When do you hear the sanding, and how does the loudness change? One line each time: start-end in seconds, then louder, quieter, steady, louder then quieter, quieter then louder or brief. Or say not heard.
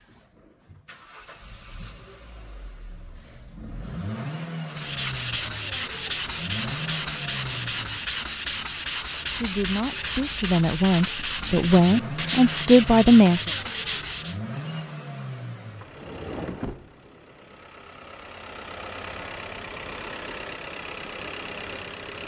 4.7-14.4 steady.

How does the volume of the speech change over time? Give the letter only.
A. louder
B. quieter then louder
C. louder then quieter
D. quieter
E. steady
A.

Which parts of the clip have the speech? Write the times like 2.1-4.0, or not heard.
9.3-13.5.